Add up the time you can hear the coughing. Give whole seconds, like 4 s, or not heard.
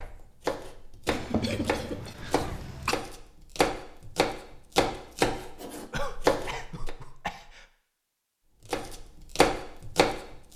4 s.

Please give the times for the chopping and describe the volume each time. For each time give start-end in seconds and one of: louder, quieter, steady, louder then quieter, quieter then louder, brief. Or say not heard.
0.0-6.9 louder
8.7-10.5 brief.